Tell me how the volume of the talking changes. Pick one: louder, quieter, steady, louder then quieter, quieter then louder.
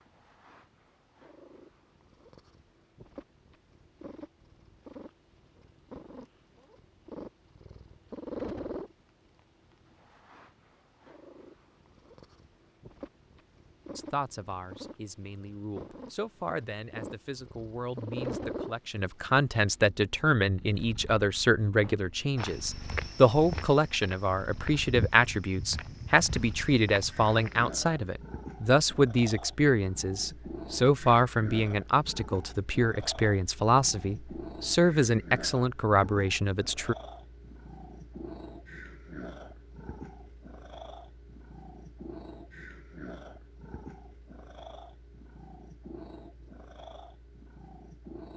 louder.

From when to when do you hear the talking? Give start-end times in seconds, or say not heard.
13.9-37.0.